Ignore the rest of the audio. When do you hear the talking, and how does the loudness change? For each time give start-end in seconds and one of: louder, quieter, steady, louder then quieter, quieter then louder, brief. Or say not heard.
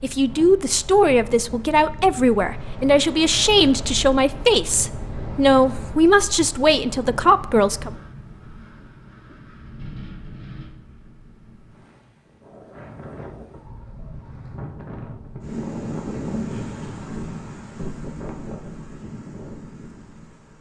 0.0-7.9 steady.